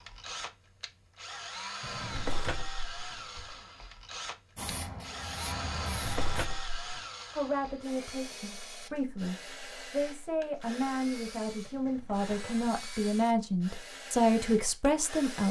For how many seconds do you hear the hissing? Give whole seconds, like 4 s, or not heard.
2 s.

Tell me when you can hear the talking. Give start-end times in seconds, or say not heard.
7.3-15.4.